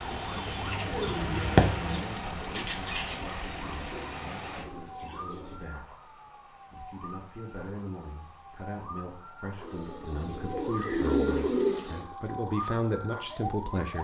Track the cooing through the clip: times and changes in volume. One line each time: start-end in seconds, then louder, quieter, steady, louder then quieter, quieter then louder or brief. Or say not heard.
0.2-5.7 louder then quieter
9.6-12.1 brief.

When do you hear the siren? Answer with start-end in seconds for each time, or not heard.
0.0-13.9.